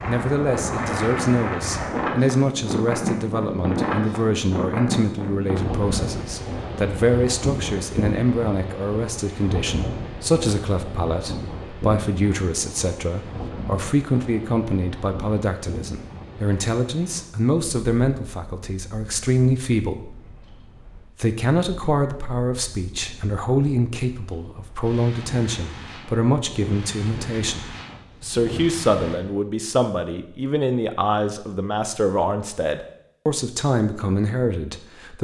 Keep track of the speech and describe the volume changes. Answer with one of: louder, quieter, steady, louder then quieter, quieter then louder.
steady.